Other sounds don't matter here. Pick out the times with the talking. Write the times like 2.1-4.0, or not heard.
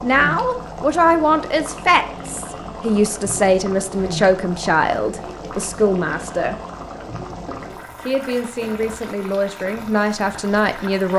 0.0-6.5, 7.5-11.1.